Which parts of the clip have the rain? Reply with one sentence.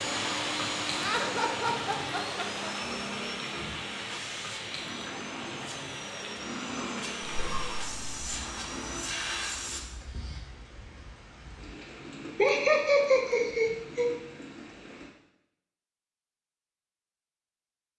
The rain can be heard from 0.0 to 15.2 s.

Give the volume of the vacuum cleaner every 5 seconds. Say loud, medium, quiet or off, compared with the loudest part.
loud, loud, off, off.